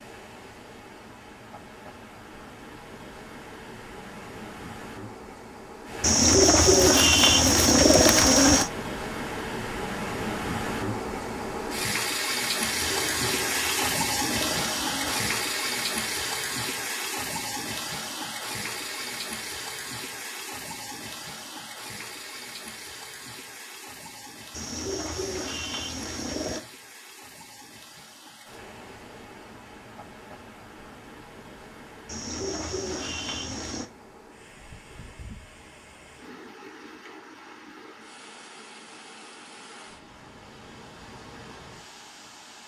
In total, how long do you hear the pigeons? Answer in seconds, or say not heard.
9 s.